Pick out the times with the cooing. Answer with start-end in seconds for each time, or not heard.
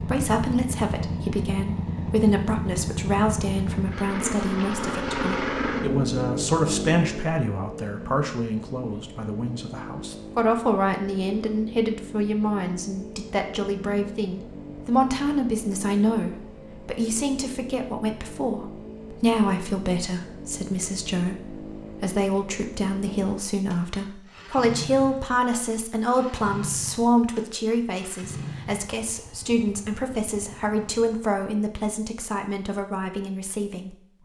not heard.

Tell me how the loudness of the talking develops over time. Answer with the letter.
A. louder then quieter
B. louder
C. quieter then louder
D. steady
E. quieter
D.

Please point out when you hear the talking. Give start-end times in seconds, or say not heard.
0.0-34.2.